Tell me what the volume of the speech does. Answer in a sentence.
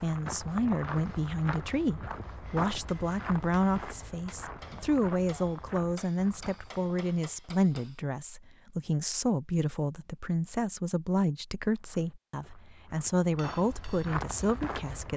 The volume of the speech stays about the same.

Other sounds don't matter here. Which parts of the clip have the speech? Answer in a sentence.
You can hear the speech from 0.0 to 15.1 s.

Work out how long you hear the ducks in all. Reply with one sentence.
You can't hear the ducks here.